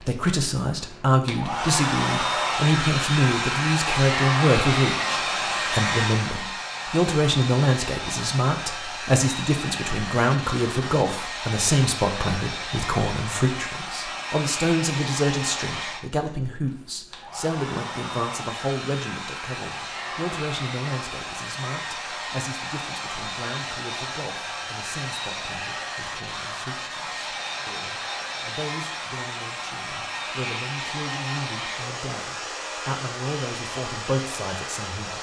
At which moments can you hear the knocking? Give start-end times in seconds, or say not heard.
not heard.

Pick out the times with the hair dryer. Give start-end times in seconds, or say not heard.
0.0-35.1.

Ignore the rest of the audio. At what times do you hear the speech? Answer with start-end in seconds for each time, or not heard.
0.0-35.1.